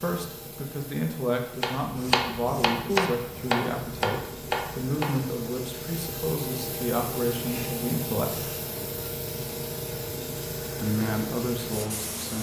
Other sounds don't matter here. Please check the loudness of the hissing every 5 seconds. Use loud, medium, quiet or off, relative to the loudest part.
medium, loud, loud.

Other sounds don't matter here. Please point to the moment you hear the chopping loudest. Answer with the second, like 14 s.
3 s.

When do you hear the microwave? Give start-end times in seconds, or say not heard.
not heard.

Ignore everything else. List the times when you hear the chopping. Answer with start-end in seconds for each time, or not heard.
1.6-5.2.